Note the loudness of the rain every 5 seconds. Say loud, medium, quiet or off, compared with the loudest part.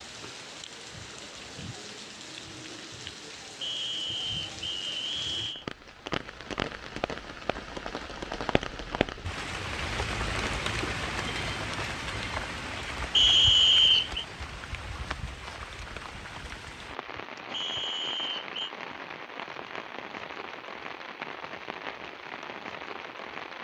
medium, loud, loud, medium, medium.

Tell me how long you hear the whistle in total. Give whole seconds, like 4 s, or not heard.
4 s.